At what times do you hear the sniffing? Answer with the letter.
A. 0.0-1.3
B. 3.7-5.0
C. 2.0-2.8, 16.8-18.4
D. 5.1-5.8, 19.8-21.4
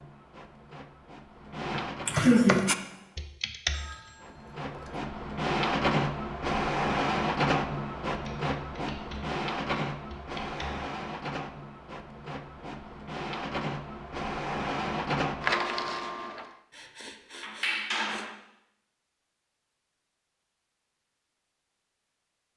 C.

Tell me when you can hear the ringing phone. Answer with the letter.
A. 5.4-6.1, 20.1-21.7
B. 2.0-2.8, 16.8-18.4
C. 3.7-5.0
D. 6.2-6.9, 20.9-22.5
C.